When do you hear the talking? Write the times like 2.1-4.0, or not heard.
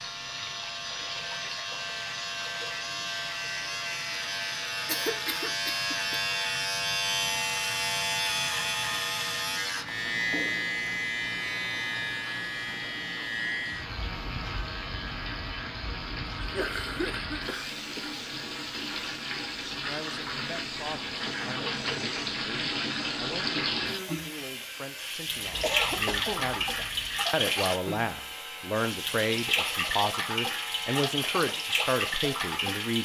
19.9-33.0.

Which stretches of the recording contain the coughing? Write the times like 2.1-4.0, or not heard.
4.8-6.2, 16.4-18.1, 25.6-26.5.